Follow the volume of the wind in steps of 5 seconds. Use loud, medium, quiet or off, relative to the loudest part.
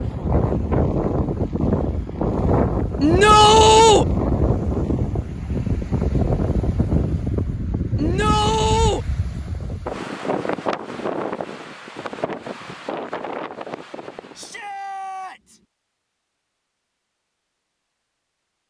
loud, loud, medium, off.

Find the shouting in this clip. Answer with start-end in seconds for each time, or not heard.
3.0-4.0, 8.0-9.1, 14.3-15.6.